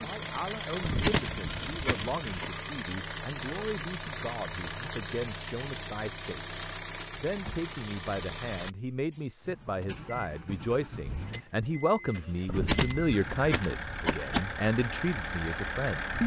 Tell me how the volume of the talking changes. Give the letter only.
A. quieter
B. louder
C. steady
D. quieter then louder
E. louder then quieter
B.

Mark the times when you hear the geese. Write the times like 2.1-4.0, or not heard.
0.8-2.5, 12.4-14.4.